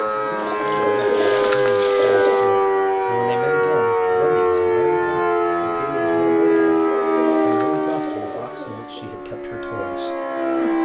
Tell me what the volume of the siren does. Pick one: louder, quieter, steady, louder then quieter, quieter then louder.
quieter.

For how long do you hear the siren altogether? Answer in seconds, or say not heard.
11 s.